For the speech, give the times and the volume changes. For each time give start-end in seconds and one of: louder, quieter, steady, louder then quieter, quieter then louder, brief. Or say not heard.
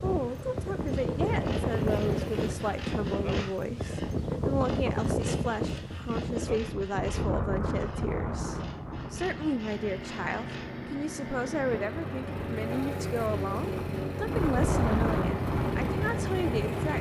0.0-16.9 steady.